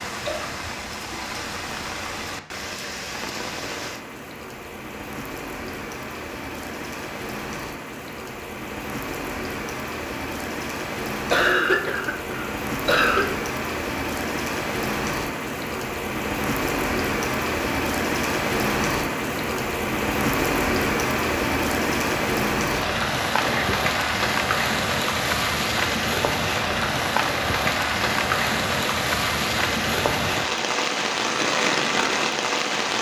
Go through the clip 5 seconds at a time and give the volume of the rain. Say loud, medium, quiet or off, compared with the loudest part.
medium, medium, medium, loud, loud, loud, loud.